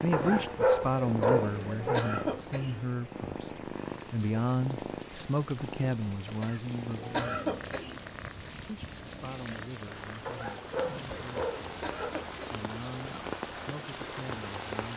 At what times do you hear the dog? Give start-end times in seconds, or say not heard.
0.1-2.0, 10.2-12.2.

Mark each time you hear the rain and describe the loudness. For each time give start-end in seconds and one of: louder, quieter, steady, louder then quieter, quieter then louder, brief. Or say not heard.
3.5-14.9 louder.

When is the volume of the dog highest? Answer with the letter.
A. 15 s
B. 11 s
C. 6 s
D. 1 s
D.